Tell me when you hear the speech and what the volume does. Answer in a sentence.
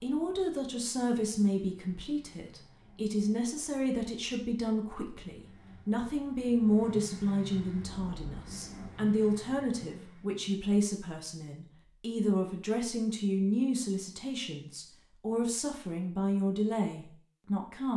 The speech can be heard from 0.0 to 17.9 s, at a steady volume.